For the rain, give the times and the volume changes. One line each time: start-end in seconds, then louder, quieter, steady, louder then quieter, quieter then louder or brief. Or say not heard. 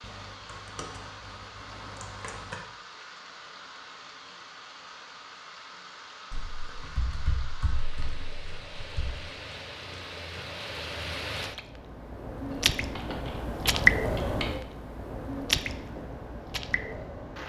0.0-17.4 louder.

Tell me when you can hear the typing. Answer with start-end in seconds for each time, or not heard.
0.0-2.6, 6.3-9.2, 12.5-14.4.